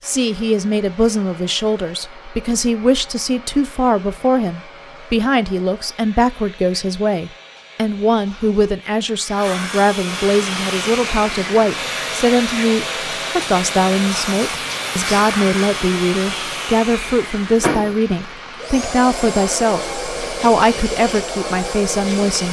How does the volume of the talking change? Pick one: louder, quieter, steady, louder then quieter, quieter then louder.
steady.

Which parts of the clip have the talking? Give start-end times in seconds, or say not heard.
0.1-22.4.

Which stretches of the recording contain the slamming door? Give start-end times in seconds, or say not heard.
not heard.